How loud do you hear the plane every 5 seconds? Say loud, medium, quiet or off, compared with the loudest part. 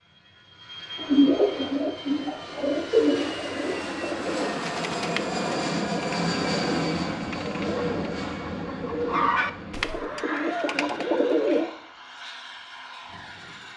medium, loud, medium.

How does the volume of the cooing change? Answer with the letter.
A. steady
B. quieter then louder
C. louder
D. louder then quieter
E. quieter
B.